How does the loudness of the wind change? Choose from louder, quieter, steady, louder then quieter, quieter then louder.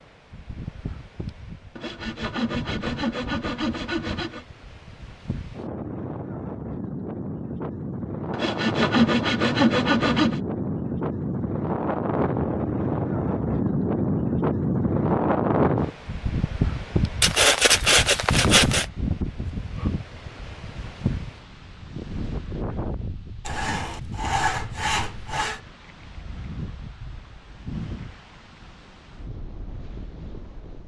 louder then quieter.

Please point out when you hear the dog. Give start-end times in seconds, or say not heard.
not heard.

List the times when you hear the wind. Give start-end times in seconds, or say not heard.
0.0-30.8.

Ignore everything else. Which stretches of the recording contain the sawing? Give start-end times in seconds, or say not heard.
1.8-4.5, 8.3-10.4, 17.2-18.9, 23.4-25.6.